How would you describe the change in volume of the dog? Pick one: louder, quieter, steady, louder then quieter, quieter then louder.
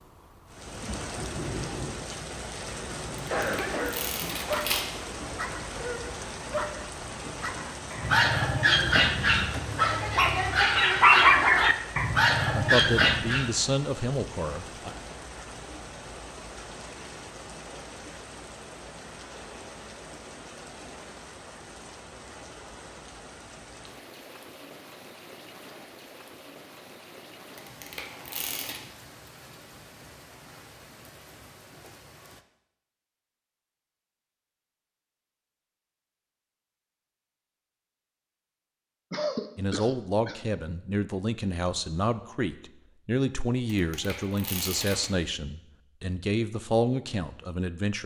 louder.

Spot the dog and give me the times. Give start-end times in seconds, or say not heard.
3.3-13.5.